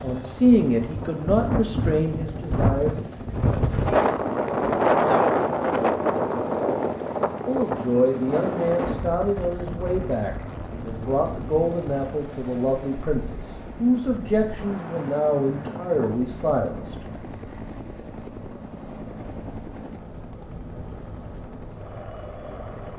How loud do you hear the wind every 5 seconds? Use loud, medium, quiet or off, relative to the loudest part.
loud, loud, quiet, quiet, quiet.